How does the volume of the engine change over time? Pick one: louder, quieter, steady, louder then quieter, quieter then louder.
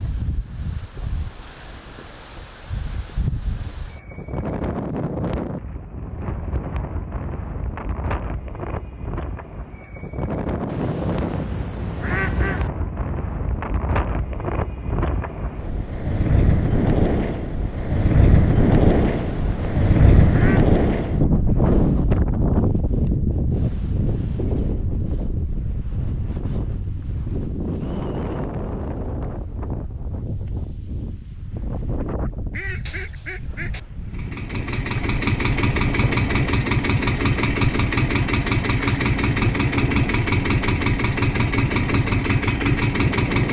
steady.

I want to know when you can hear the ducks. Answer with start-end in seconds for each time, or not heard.
10.7-12.7, 19.0-20.7, 32.5-33.8.